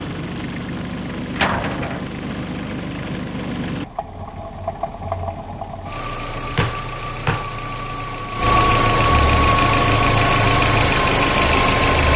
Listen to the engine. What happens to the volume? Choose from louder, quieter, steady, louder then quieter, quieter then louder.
louder.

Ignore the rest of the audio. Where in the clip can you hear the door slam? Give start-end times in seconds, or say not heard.
1.4-2.0, 6.5-7.5.